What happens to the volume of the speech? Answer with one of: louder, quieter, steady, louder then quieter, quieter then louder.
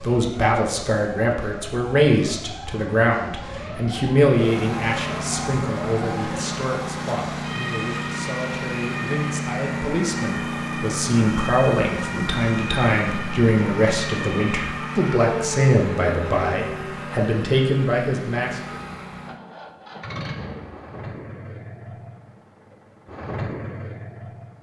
quieter then louder.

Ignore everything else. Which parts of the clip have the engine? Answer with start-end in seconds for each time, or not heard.
4.3-24.5.